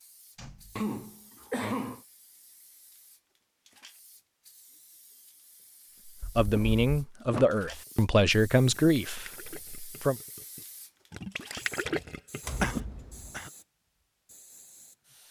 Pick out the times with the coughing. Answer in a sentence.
The coughing can be heard from 0.8 to 2.0 s, from 6.2 to 6.8 s and from 12.6 to 13.5 s.